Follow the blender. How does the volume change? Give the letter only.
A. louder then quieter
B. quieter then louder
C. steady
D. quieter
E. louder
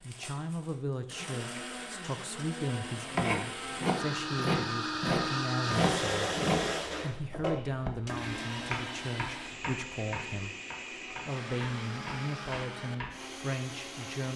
A.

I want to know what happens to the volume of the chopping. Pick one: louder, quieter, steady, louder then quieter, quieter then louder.
quieter.